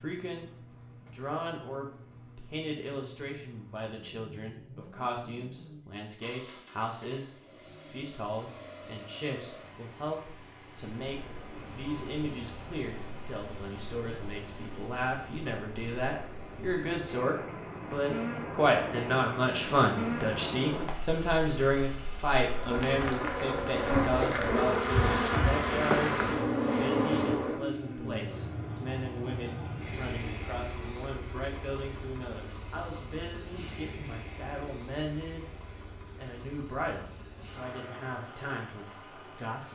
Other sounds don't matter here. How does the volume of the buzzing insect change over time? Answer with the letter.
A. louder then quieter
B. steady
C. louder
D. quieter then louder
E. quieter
C.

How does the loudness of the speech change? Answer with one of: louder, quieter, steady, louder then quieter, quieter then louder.
louder then quieter.